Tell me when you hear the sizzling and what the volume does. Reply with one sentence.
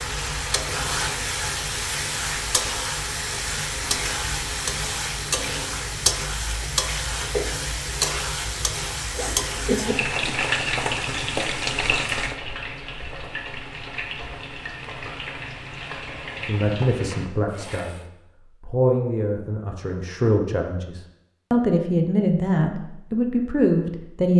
You can hear the sizzling from 0.0 to 18.1 s, getting quieter.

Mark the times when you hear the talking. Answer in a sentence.
The talking can be heard from 16.4 to 24.3 s.